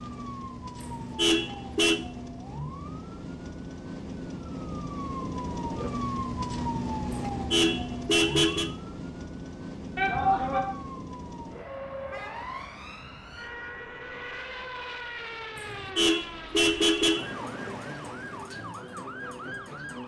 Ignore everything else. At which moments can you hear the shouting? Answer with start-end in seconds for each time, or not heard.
9.9-10.6.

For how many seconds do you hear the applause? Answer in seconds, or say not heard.
not heard.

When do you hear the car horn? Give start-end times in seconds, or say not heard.
0.8-2.0, 7.3-8.7, 15.6-17.4.